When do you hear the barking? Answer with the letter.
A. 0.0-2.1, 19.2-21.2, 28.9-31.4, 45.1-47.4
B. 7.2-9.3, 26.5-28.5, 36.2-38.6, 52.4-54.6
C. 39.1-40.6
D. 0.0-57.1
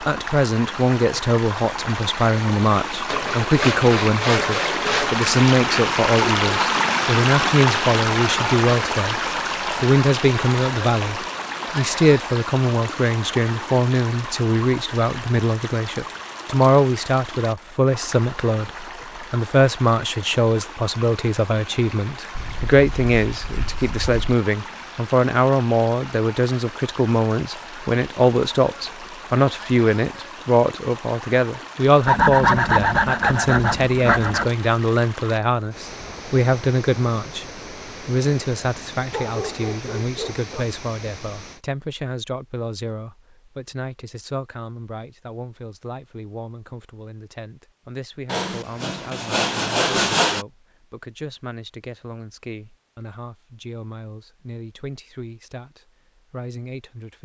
C.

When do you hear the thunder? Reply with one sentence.
You can't hear the thunder here.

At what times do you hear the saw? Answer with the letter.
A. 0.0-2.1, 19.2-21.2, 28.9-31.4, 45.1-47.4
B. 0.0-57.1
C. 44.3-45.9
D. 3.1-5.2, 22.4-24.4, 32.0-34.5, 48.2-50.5
D.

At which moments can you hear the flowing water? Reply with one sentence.
The flowing water can be heard from 0.0 to 41.6 s.